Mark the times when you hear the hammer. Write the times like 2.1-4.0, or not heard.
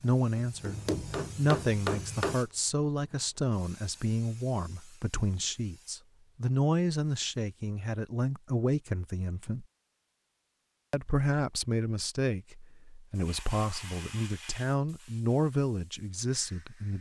0.0-2.4.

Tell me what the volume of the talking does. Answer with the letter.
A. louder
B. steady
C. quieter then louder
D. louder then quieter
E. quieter
B.